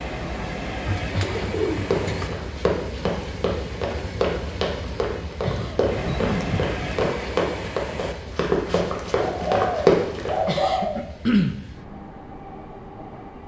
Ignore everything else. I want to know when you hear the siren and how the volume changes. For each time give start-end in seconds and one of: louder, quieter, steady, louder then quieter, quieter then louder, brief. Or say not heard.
not heard.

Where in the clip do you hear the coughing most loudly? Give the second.
11 s.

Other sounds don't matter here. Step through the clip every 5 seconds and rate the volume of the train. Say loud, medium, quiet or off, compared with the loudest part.
loud, loud, medium.